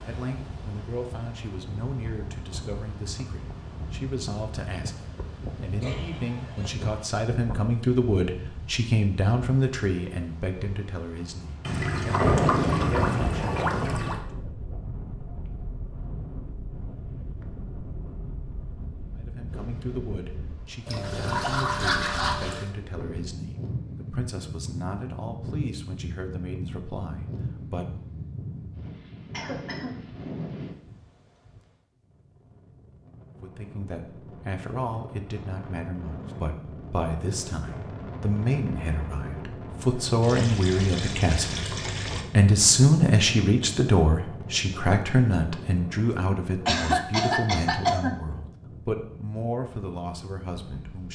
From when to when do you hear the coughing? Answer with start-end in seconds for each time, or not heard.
5.8-7.0, 29.3-29.9, 46.6-48.1.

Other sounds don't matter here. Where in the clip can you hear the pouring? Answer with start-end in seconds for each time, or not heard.
11.7-14.2, 20.9-22.7, 40.2-42.2.